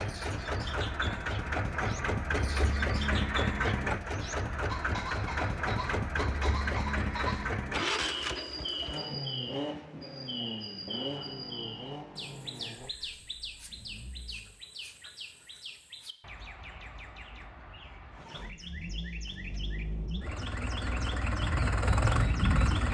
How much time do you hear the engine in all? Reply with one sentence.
You can hear the engine for 19 seconds altogether.